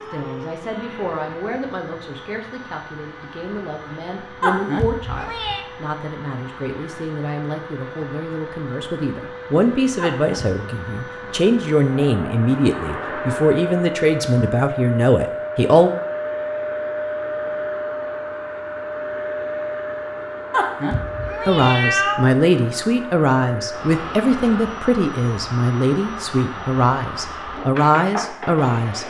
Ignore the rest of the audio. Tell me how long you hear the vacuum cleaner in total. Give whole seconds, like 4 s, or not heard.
29 s.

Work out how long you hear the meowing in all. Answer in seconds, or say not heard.
4 s.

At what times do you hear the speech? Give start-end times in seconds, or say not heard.
0.0-15.9, 21.4-29.0.